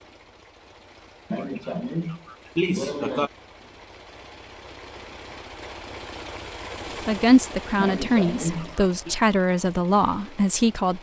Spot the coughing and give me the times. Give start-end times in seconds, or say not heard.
1.3-3.3, 7.8-9.2.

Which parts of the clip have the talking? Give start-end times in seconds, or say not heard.
7.0-10.9.